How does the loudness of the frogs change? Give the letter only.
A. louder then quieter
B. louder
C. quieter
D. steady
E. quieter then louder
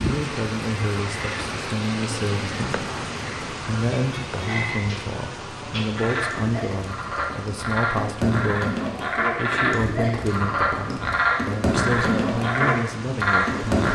B.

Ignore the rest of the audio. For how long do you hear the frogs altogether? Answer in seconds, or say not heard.
14 s.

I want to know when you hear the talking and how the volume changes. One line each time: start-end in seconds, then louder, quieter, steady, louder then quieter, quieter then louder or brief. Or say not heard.
0.0-13.8 steady.